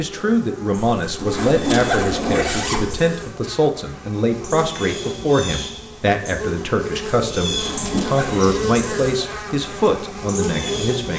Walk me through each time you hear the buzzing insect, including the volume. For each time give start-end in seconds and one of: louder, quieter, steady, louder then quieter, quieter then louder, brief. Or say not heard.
0.0-11.1 louder.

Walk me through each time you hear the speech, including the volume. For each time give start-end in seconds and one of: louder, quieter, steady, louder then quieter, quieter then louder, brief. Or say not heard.
0.0-11.1 steady.